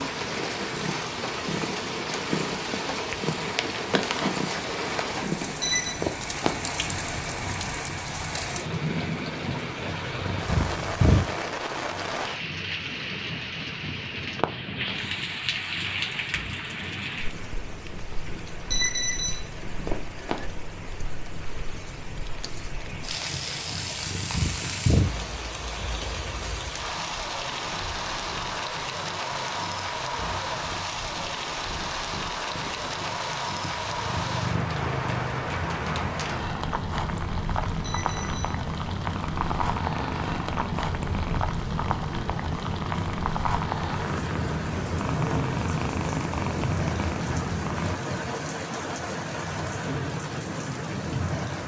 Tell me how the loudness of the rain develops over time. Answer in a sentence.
The loudness of the rain stays about the same.